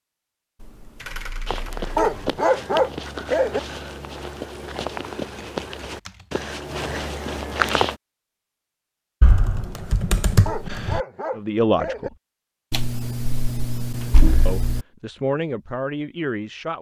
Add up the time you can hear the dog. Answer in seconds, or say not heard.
3 s.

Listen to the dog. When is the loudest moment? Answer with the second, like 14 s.
3 s.